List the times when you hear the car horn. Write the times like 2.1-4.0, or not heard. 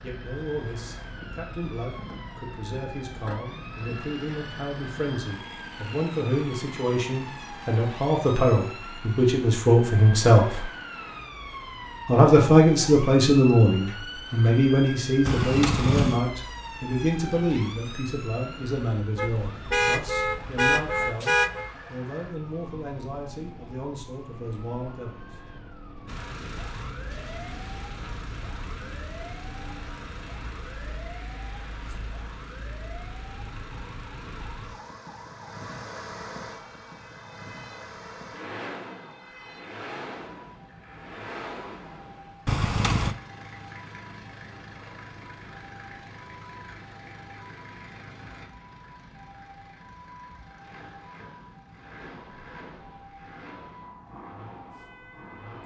15.2-16.2, 19.1-21.7, 42.5-43.1.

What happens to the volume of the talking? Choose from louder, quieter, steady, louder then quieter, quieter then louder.
louder then quieter.